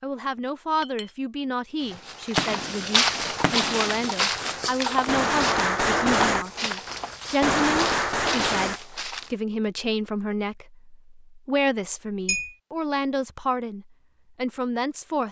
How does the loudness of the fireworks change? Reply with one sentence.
The volume of the fireworks goes down, then up.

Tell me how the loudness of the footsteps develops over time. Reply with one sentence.
The loudness of the footsteps goes down.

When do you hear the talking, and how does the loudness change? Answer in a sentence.
You can hear the talking from 0.0 to 15.2 s, at a steady volume.